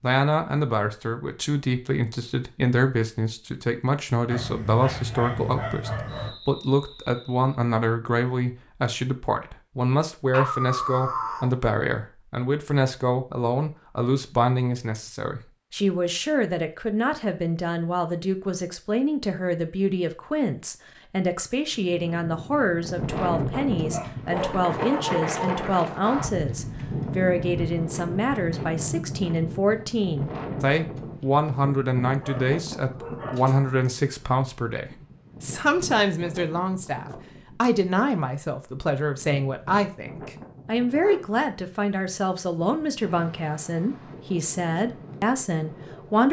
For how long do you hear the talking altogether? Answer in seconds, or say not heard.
46 s.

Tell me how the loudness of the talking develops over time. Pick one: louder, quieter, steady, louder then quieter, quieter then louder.
steady.